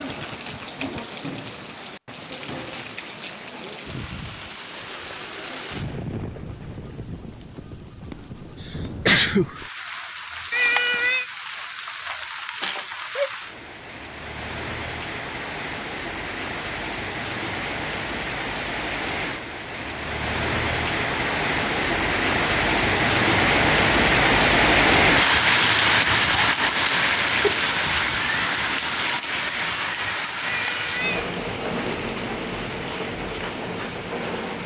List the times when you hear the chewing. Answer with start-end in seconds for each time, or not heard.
not heard.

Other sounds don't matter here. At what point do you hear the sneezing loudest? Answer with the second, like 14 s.
9 s.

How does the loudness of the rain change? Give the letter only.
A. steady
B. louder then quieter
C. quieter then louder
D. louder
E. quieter
B.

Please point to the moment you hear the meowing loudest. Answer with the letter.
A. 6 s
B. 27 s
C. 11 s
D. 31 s
C.